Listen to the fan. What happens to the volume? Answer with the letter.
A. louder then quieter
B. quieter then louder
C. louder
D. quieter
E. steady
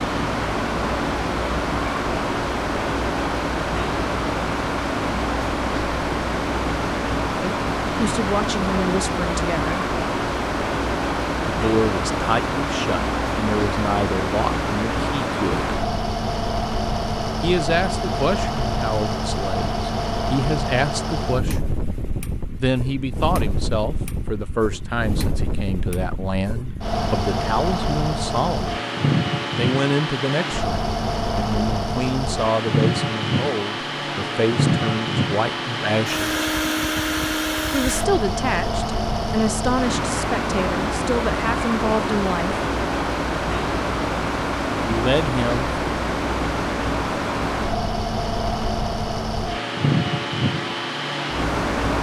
E.